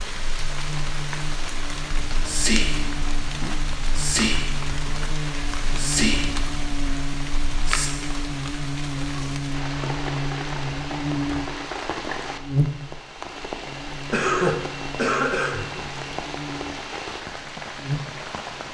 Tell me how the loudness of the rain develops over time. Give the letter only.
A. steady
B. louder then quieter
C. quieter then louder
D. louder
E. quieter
A.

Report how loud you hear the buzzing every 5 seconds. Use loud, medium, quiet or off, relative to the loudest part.
medium, loud, loud, medium.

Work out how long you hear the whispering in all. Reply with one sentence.
The whispering can be heard for 6 seconds in total.